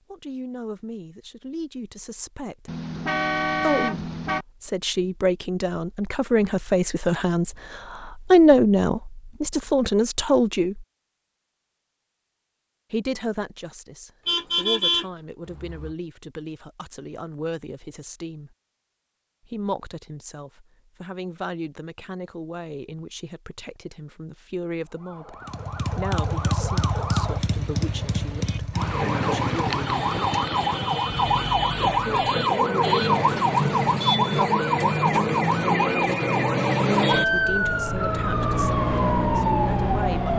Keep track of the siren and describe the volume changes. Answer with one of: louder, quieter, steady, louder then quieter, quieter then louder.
louder.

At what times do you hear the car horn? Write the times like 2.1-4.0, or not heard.
2.6-4.5, 14.2-15.9, 32.9-34.5.